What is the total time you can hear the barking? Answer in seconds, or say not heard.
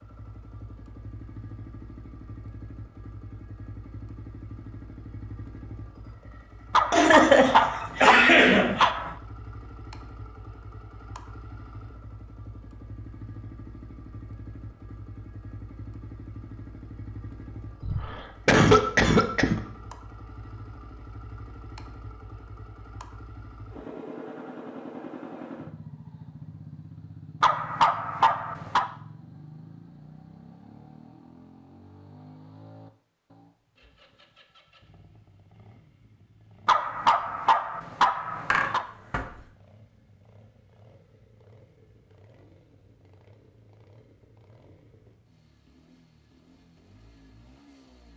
6 s.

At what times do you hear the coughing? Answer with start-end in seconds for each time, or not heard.
6.9-8.9, 17.8-19.6, 38.5-39.2.